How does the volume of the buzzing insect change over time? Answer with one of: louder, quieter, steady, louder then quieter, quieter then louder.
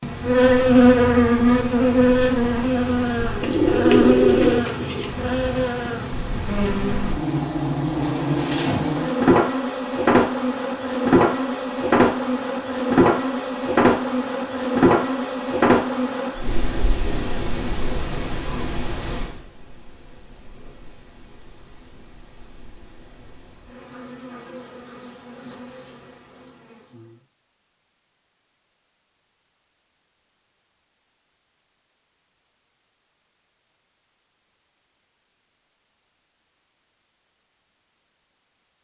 quieter.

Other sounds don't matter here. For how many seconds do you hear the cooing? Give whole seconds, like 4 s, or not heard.
2 s.